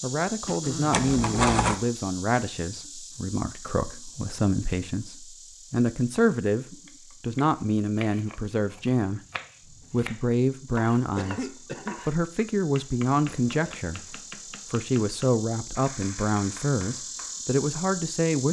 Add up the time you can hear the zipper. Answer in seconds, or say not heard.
2 s.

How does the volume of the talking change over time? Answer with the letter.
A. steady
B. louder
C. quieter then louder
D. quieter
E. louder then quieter
A.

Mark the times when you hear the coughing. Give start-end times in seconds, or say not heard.
0.5-1.0, 11.2-12.0.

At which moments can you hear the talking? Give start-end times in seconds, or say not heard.
0.0-9.2, 9.9-18.4.